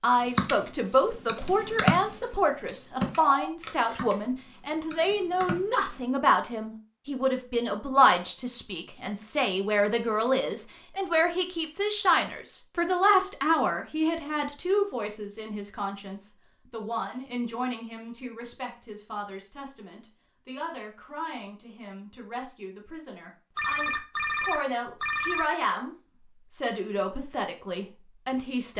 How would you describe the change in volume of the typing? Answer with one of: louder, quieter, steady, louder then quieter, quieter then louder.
louder then quieter.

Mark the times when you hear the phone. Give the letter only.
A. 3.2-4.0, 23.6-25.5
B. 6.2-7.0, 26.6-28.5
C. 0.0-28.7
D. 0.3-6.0
A.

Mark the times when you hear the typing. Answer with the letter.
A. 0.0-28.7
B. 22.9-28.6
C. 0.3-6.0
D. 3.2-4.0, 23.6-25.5
C.